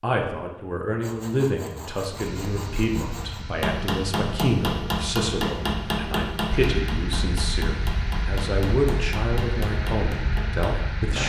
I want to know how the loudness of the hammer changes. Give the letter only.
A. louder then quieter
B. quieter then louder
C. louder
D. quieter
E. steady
D.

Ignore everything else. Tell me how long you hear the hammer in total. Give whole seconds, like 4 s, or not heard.
7 s.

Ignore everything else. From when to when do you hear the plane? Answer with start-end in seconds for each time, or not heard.
2.1-11.2.